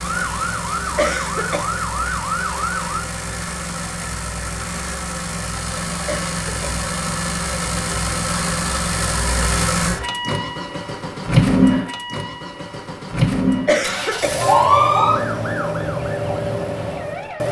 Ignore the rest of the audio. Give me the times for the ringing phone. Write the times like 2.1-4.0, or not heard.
not heard.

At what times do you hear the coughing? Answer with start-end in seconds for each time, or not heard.
0.9-1.6, 6.0-6.8, 13.7-14.3.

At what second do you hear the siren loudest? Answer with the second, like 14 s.
15 s.